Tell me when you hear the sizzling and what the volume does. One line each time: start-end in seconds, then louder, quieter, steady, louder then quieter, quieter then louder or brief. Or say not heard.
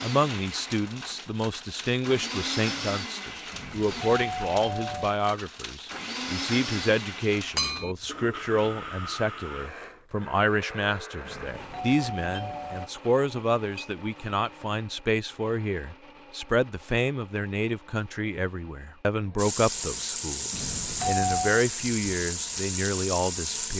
19.4-23.7 steady.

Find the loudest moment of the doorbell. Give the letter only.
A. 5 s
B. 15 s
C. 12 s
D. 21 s
D.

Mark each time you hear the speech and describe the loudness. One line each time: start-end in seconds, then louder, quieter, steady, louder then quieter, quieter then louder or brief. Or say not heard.
0.0-23.7 steady.